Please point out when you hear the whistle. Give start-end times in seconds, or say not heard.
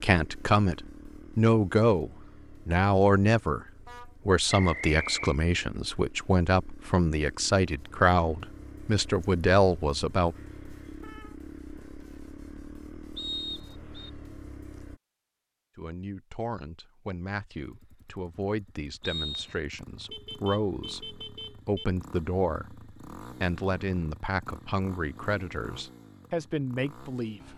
4.5-5.4, 13.2-14.1, 19.0-19.6.